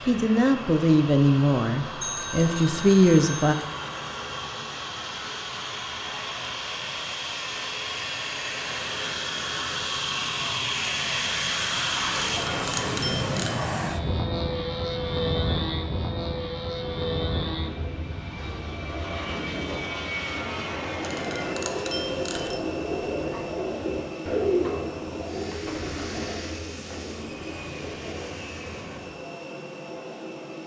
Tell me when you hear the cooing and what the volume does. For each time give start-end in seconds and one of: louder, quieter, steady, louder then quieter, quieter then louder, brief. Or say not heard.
16.8-28.8 louder then quieter.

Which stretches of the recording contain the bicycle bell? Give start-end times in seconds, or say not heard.
2.0-3.6, 12.2-13.7, 21.0-22.6.